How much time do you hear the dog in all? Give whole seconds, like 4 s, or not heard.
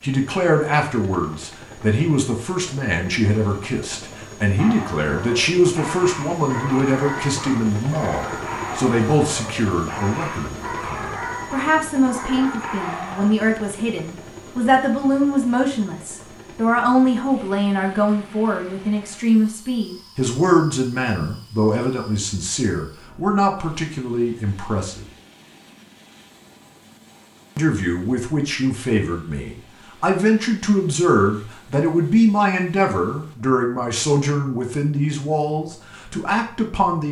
9 s.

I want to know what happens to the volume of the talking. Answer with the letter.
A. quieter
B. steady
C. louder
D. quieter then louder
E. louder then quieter
B.